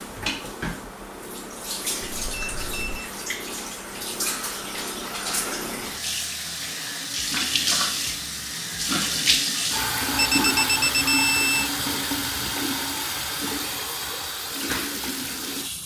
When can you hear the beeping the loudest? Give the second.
11 s.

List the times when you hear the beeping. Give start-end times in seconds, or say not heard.
2.0-3.0, 10.4-11.7.